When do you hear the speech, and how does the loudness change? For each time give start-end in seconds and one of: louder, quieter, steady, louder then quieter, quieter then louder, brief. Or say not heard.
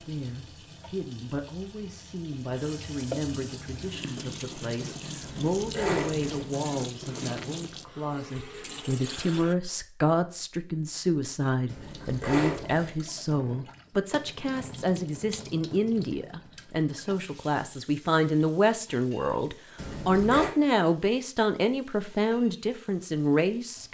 0.1-23.9 louder.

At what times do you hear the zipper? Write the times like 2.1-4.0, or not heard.
5.2-6.5, 11.7-12.9, 19.8-20.5.